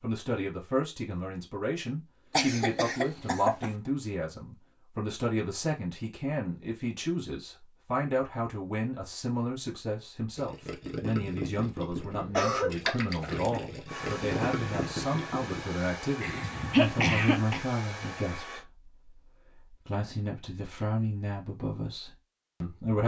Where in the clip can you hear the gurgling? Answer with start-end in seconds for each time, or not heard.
10.3-15.7.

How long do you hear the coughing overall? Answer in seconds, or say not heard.
4 s.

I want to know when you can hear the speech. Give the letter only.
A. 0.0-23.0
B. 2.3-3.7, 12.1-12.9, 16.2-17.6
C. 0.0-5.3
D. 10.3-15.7
A.